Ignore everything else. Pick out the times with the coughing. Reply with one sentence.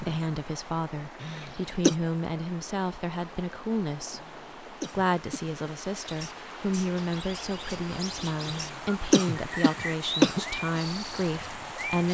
You can hear the coughing from 1.2 to 1.9 s, from 4.2 to 5.5 s and from 8.5 to 10.4 s.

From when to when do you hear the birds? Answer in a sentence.
You can hear the birds from 6.0 to 12.1 s.